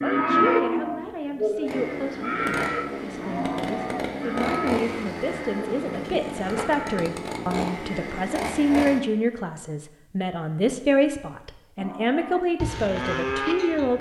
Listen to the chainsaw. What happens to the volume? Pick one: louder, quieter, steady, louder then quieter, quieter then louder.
steady.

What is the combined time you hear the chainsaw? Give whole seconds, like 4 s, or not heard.
7 s.